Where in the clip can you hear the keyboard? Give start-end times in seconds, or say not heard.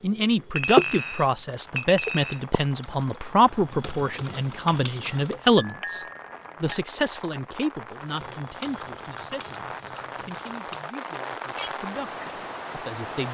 0.0-5.5, 8.0-10.9.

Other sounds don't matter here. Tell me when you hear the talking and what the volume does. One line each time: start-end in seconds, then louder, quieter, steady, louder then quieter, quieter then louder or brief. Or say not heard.
0.0-13.2 quieter.